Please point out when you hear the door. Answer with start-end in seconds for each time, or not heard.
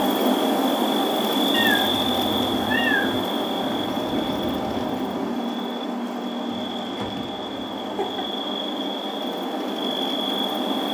not heard.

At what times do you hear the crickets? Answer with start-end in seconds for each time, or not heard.
0.0-10.8.